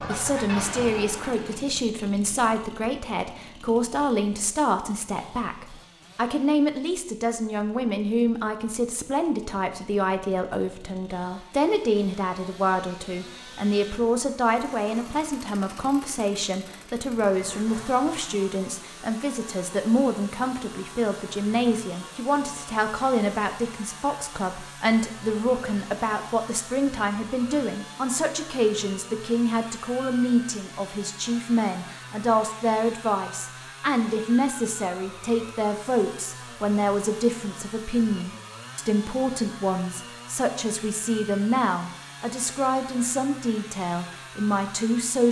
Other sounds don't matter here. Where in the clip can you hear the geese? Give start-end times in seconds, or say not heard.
0.0-1.6.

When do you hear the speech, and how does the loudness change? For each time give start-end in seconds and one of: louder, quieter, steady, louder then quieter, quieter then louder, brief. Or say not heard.
0.0-45.2 steady.